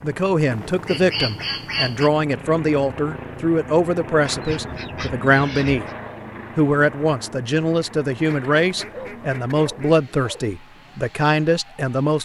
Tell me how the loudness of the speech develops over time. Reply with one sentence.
The volume of the speech stays about the same.